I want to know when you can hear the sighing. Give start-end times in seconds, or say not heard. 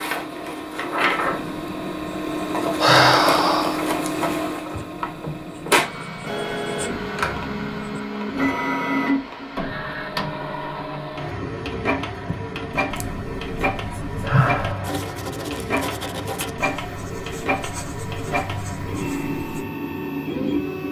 2.8-3.8, 14.2-14.9.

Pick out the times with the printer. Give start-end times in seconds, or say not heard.
0.0-20.8.